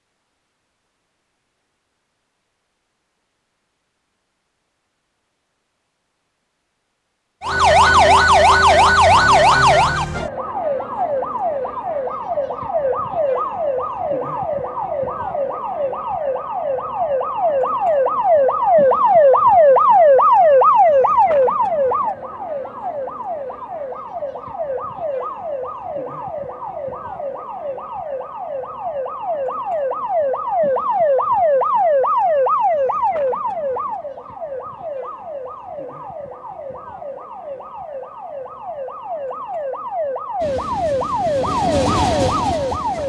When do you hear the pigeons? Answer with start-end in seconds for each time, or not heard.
not heard.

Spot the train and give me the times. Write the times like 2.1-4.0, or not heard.
40.4-43.0.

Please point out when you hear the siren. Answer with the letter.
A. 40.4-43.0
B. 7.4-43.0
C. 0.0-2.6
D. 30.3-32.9
B.